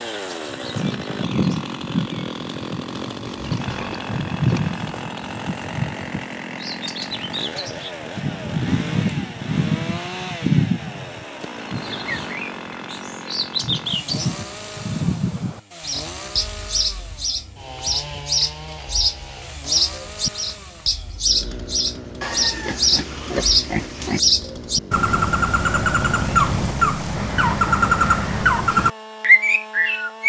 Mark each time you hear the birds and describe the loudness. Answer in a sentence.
The birds can be heard from 0.0 to 30.2 s, getting louder.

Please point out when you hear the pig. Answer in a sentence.
You can hear the pig from 3.2 to 4.8 s and from 22.2 to 24.2 s.